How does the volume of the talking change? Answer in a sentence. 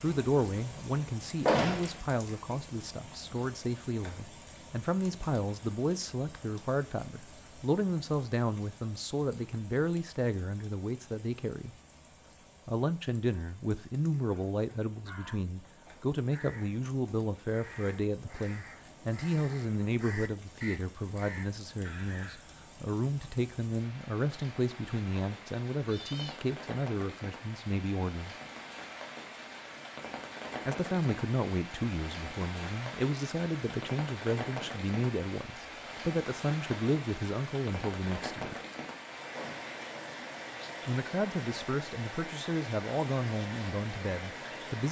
The loudness of the talking stays about the same.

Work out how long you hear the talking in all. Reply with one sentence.
You can hear the talking for 39 seconds altogether.